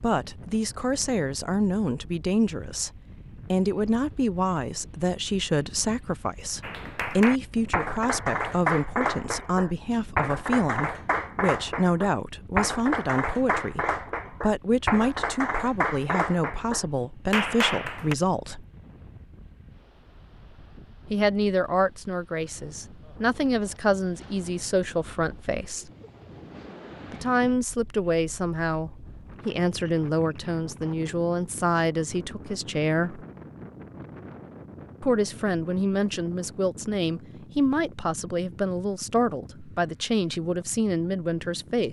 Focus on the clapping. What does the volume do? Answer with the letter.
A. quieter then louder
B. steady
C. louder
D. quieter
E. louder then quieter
B.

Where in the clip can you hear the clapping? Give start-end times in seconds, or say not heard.
6.6-18.1.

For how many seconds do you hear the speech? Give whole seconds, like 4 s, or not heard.
36 s.